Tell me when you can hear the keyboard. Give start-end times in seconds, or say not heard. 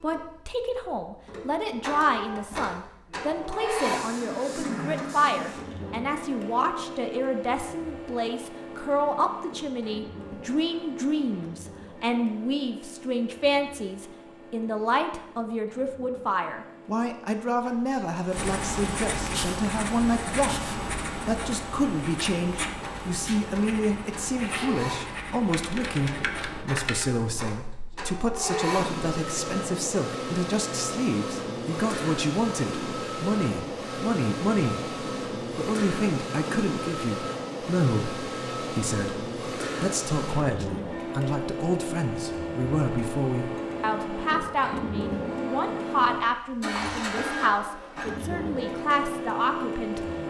25.5-27.1.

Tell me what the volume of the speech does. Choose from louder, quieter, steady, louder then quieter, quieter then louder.
steady.